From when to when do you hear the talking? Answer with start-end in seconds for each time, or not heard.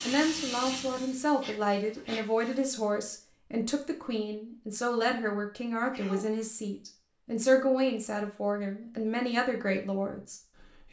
0.1-10.8.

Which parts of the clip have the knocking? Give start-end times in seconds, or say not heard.
not heard.